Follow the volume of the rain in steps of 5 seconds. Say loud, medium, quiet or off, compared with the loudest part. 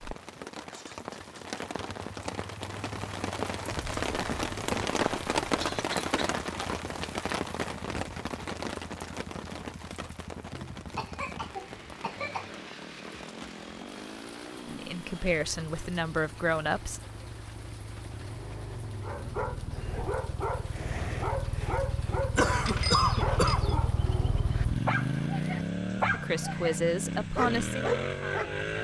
loud, loud, quiet, quiet, quiet, quiet.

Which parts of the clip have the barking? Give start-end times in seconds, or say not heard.
19.0-28.6.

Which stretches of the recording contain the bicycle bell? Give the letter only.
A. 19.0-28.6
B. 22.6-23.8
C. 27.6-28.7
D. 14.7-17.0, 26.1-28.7
B.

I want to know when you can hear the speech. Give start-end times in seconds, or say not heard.
14.7-17.0, 26.1-28.7.